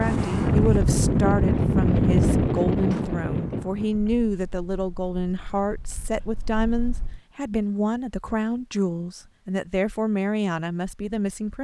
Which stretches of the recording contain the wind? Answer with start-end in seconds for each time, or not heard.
0.0-7.2.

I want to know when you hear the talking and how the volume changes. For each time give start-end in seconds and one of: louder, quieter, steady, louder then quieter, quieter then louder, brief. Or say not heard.
0.0-11.5 steady.